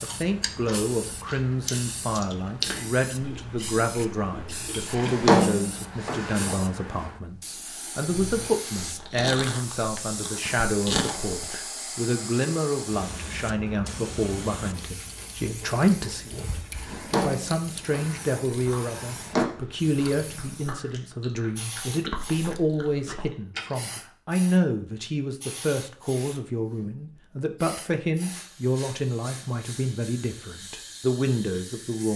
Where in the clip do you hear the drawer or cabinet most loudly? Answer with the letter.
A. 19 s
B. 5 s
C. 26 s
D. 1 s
B.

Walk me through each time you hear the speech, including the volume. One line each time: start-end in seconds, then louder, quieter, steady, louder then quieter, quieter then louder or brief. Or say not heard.
0.0-32.1 steady.